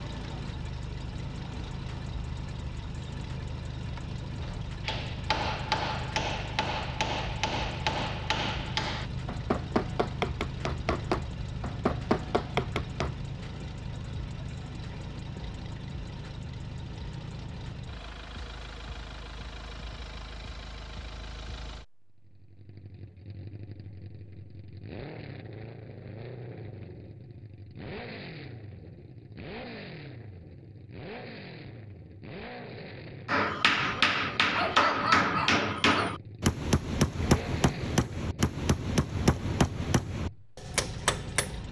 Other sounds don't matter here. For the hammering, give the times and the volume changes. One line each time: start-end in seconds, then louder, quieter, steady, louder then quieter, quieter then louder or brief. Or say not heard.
4.8-13.2 steady
33.2-41.5 quieter.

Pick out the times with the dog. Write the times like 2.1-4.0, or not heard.
34.5-36.1.